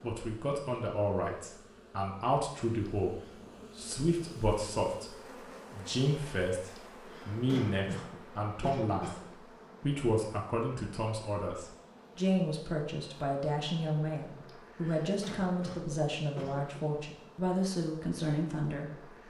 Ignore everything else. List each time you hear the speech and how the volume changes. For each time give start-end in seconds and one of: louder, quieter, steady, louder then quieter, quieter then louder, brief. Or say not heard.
0.0-19.2 steady.